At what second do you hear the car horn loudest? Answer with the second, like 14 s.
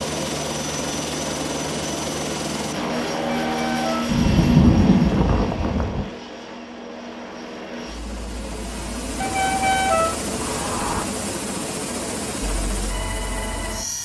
10 s.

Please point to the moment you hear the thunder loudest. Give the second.
5 s.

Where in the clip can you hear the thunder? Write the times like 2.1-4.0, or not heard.
4.0-6.0.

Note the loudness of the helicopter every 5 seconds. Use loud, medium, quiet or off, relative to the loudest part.
loud, medium, loud.